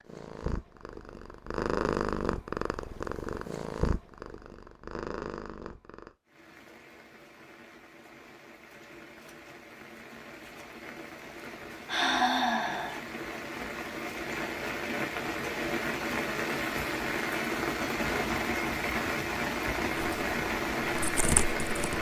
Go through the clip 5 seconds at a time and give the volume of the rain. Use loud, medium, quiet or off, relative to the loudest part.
off, quiet, medium, loud, loud.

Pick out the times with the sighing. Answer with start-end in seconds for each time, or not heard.
11.8-13.0.